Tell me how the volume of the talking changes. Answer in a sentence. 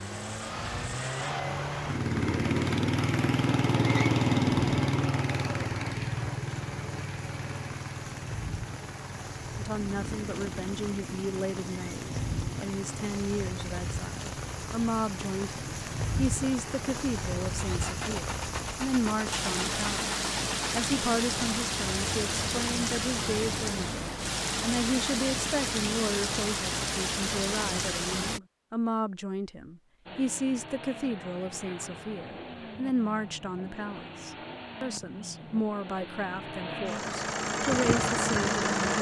The loudness of the talking stays about the same.